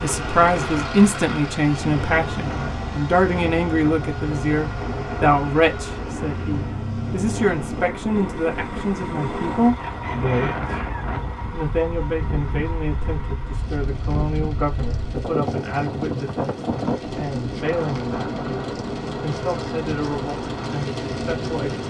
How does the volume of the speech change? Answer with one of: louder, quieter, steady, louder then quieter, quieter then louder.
quieter.